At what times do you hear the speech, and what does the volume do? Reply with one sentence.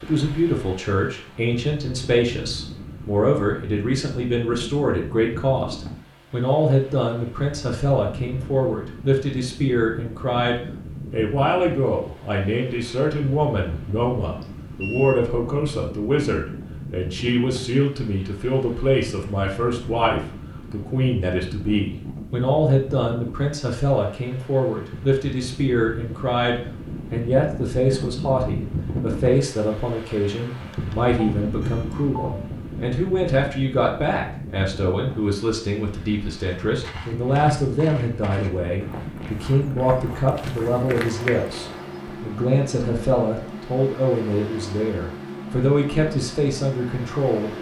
You can hear the speech from 0.0 to 47.5 s, at a steady volume.